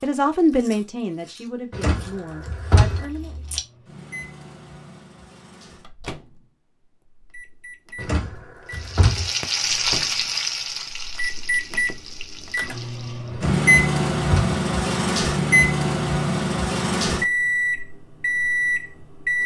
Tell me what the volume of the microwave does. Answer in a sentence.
The loudness of the microwave goes up.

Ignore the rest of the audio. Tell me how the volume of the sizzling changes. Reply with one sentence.
The loudness of the sizzling goes down.